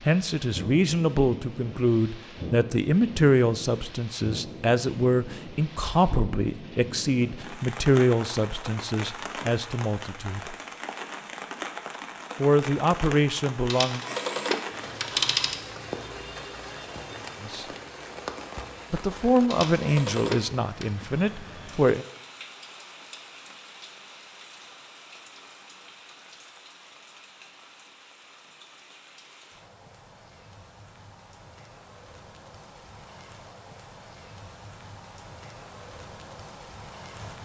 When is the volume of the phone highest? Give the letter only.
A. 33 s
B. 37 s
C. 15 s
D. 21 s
C.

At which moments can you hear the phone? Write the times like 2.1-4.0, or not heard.
13.7-15.6, 19.5-20.9.